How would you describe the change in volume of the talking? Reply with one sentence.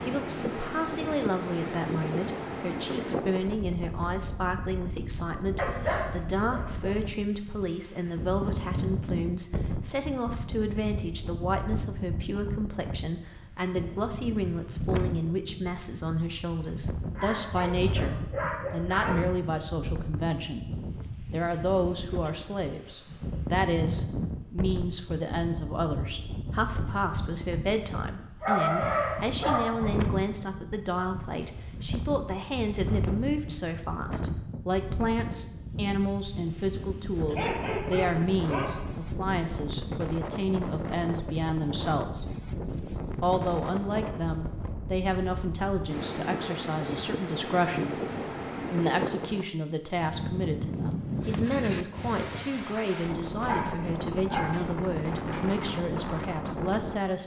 The loudness of the talking stays about the same.